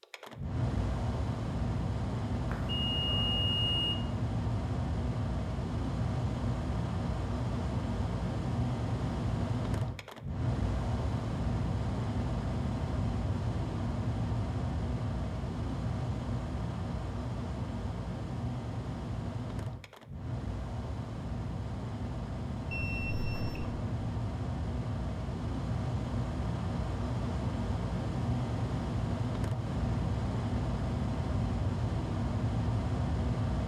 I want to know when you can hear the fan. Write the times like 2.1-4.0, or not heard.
0.0-33.6.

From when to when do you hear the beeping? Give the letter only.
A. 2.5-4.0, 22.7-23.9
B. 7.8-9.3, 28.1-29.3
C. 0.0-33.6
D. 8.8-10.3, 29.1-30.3
A.